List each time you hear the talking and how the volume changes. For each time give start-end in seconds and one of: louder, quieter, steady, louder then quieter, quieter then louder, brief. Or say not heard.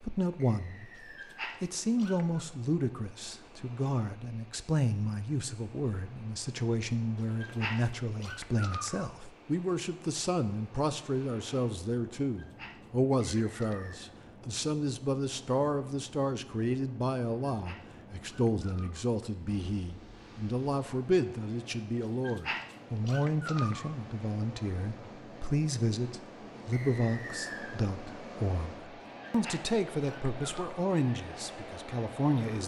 0.0-1.0 brief
1.6-32.6 steady.